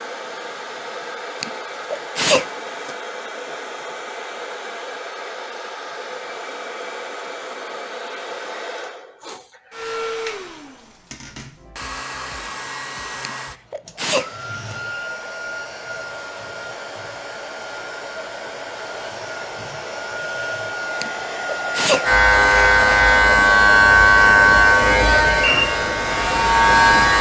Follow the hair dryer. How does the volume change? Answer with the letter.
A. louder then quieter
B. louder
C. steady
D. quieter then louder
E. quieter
B.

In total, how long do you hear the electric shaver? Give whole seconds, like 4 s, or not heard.
5 s.